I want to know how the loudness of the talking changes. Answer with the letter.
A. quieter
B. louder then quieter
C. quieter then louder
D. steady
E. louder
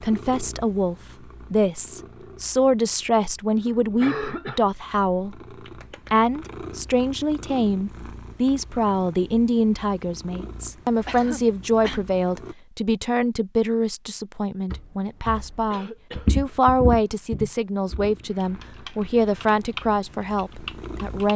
D.